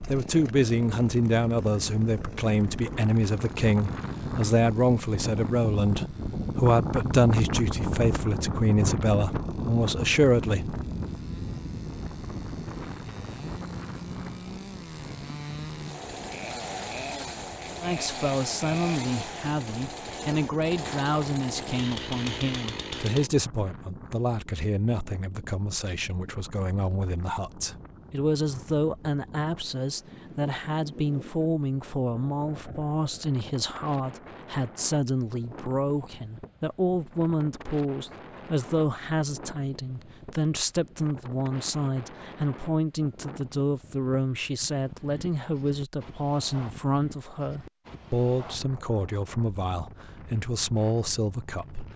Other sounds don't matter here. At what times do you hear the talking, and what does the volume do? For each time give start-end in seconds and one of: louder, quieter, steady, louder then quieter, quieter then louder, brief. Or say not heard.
0.1-10.8 steady
17.8-51.9 steady.